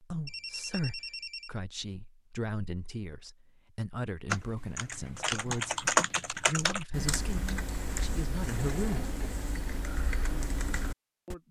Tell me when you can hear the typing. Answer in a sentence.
You can hear the typing from 4.3 to 11.3 s.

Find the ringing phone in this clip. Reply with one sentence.
The ringing phone can be heard from 0.2 to 1.5 s and from 8.6 to 9.3 s.